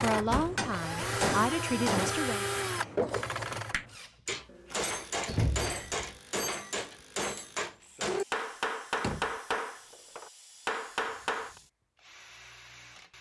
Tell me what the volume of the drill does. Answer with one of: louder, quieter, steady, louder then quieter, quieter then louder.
quieter.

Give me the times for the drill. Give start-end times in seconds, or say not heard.
0.0-13.1.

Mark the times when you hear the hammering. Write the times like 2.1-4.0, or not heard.
0.1-11.6.